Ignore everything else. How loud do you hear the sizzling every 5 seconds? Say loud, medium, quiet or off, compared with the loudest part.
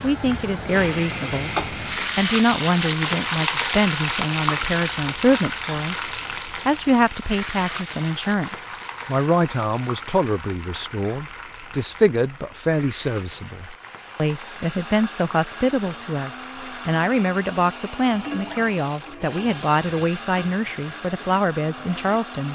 loud, medium, quiet, quiet, quiet.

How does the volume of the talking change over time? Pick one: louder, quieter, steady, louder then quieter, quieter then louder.
steady.